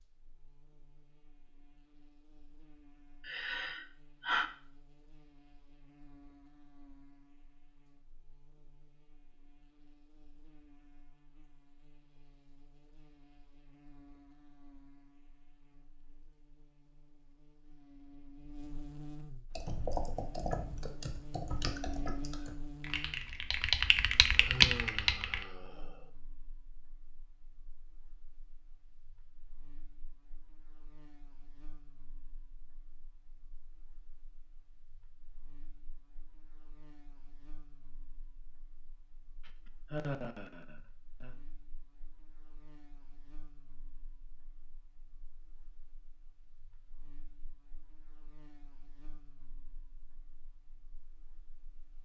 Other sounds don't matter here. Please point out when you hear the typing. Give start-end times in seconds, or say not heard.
19.6-25.4.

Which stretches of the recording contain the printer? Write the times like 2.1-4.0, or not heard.
not heard.